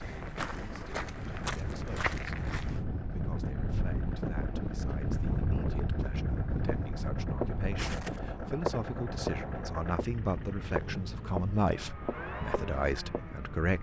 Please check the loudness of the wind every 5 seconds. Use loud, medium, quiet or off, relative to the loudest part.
loud, loud, medium.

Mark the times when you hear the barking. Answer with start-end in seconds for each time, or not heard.
not heard.